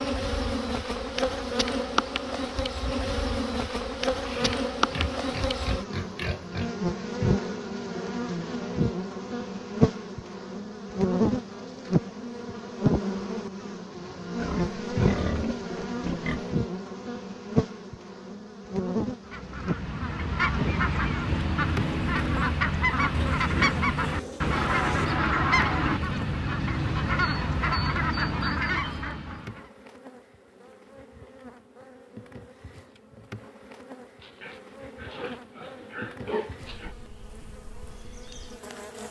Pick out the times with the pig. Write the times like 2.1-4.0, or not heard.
4.2-6.8, 14.3-16.6, 23.1-25.1, 34.2-37.0.